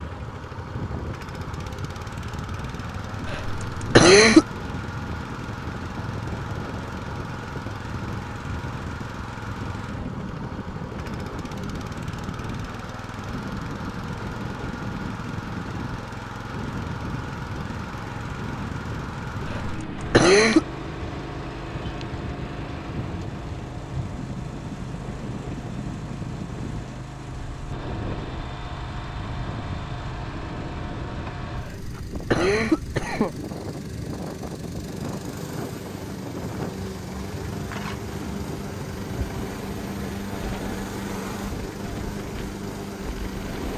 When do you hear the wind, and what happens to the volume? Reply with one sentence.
The wind can be heard from 0.0 to 43.7 s, at a steady volume.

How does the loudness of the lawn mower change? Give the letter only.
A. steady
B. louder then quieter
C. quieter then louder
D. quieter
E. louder
A.